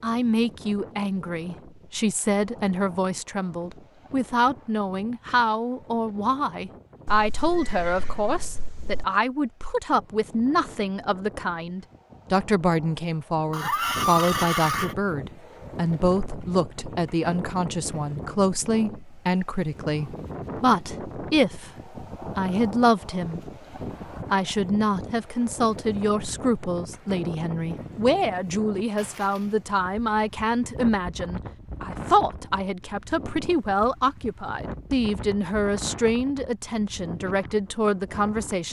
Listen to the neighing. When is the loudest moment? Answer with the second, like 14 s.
14 s.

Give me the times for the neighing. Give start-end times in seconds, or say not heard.
7.0-9.1, 13.5-14.9, 28.9-29.6.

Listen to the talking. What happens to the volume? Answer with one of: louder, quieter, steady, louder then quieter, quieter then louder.
steady.